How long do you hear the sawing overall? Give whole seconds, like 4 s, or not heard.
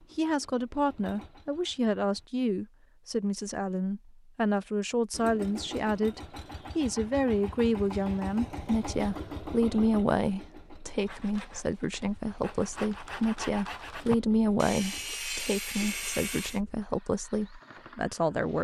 6 s.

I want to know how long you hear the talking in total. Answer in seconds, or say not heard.
18 s.